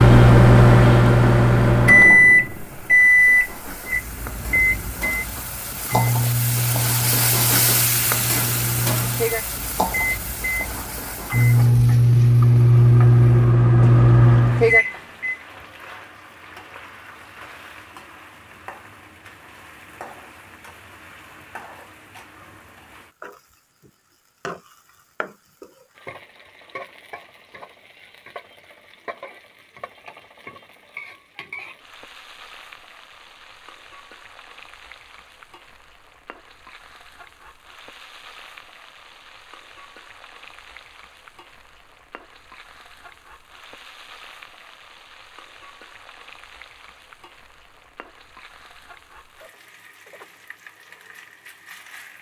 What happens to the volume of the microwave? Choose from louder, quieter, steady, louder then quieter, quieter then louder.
quieter then louder.